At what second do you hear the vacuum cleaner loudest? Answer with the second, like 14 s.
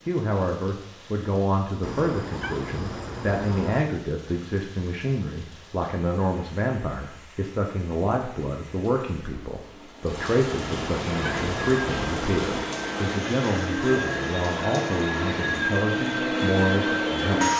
17 s.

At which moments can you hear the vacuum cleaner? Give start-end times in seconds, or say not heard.
11.2-17.5.